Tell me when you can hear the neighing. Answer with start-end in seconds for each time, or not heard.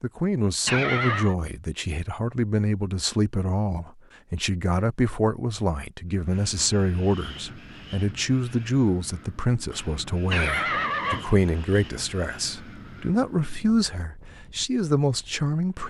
0.7-1.4, 10.3-11.8.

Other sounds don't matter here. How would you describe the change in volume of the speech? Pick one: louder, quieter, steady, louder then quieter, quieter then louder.
steady.